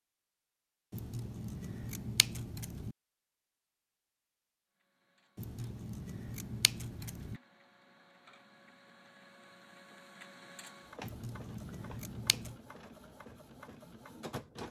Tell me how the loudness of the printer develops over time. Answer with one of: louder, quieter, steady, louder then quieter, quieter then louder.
louder.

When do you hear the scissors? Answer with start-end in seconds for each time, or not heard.
0.9-3.0, 5.3-7.4, 11.0-12.6.